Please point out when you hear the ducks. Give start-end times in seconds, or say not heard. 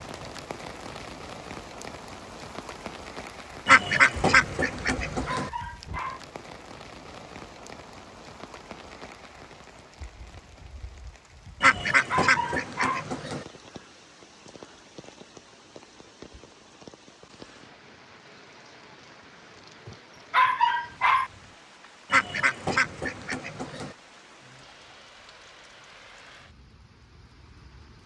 3.6-5.5, 11.6-13.4, 22.1-23.9.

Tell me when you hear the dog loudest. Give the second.
21 s.